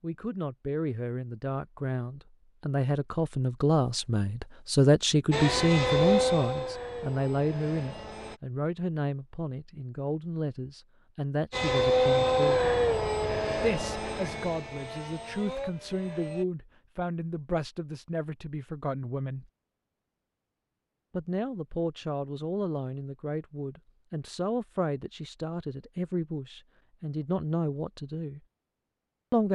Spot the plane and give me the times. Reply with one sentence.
The plane can be heard from 5.3 to 8.4 s and from 11.5 to 16.4 s.